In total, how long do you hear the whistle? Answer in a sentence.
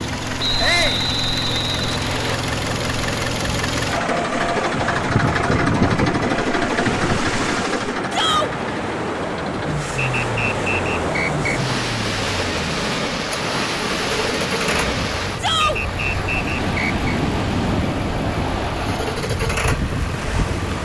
The whistle can be heard for 5 seconds in total.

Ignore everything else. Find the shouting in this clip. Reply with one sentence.
The shouting can be heard from 0.6 to 1.1 s, from 8.1 to 8.5 s and from 15.4 to 15.8 s.